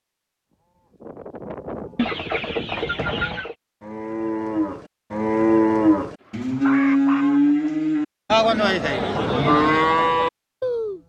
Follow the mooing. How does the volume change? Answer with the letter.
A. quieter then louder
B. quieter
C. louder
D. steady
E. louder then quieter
C.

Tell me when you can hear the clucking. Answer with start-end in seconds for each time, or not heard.
1.9-3.5, 6.2-7.9.